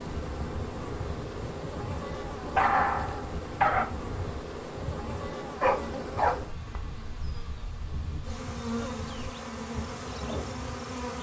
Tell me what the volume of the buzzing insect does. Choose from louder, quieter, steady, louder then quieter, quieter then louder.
quieter then louder.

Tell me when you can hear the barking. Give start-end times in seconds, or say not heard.
2.5-3.9, 5.6-6.5.